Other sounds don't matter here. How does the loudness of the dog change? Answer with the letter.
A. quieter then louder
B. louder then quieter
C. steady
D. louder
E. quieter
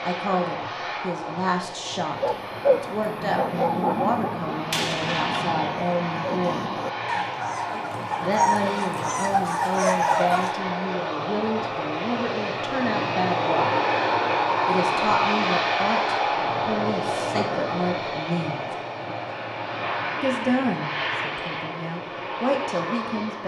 A.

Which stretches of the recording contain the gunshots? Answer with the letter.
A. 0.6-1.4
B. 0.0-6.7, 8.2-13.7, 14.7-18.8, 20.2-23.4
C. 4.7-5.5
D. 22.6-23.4
C.